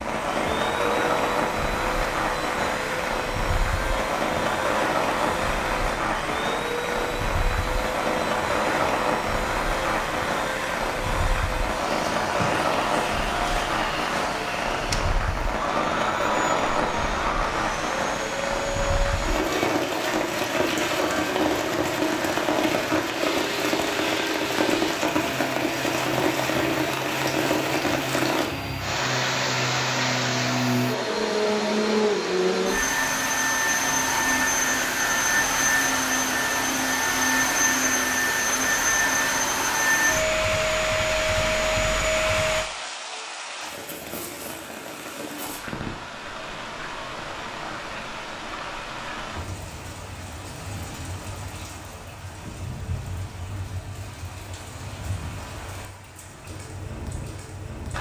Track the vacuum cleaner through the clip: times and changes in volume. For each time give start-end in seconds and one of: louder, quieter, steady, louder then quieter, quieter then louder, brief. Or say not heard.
0.2-42.7 louder.